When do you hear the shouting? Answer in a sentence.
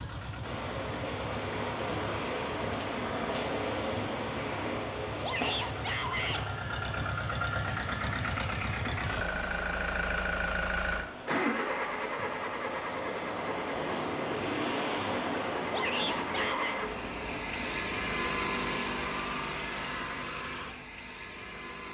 The shouting can be heard from 5.2 to 6.4 s and from 15.7 to 16.8 s.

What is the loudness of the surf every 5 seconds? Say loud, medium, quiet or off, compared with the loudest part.
loud, medium, loud, loud, off.